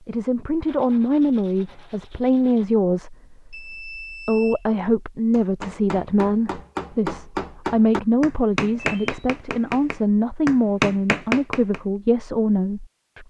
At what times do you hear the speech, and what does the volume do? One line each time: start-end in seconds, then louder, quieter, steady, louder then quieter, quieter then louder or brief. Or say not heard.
0.1-13.2 steady.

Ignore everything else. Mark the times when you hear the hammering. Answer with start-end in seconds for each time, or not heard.
5.3-11.8.